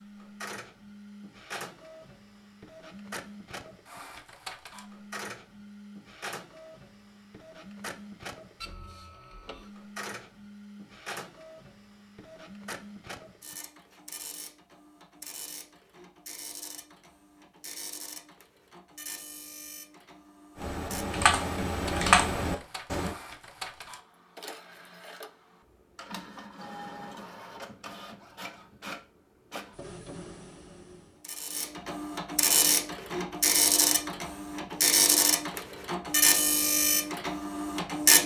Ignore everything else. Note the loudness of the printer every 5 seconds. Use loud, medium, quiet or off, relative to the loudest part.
quiet, quiet, quiet, quiet, quiet, quiet, loud, loud.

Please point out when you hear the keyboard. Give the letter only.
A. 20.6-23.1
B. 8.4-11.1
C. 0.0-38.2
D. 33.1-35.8
A.